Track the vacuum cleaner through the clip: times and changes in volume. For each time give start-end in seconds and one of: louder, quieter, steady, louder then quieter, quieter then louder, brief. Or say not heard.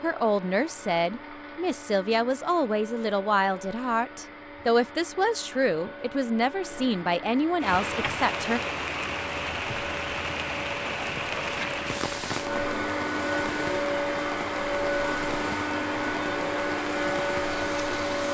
0.0-18.2 louder.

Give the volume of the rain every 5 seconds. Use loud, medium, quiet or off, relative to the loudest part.
off, loud, loud, medium.